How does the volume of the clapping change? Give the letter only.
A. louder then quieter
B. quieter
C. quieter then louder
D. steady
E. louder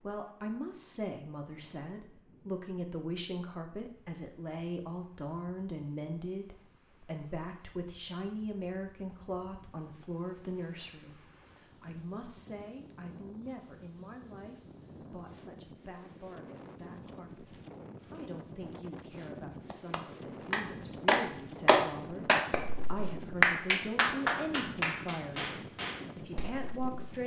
B.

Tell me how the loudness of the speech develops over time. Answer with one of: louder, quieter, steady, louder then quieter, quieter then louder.
quieter then louder.